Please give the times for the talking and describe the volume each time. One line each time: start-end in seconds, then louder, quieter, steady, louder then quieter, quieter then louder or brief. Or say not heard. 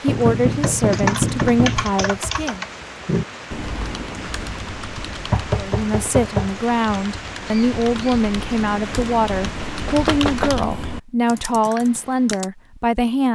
0.0-2.6 brief
5.5-13.3 steady.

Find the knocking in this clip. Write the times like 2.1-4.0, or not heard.
0.1-1.9, 5.2-6.5, 9.6-10.5.